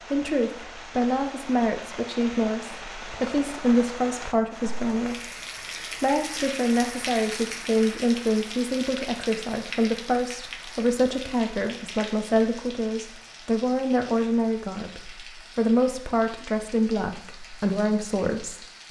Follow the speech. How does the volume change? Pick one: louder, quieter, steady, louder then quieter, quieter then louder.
steady.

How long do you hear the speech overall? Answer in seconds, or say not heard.
18 s.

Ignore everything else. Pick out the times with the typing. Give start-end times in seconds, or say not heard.
not heard.